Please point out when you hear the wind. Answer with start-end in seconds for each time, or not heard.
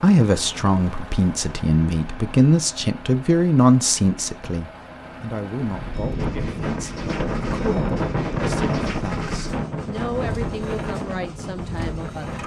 5.6-12.4.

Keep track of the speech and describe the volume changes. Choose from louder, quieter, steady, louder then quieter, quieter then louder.
quieter.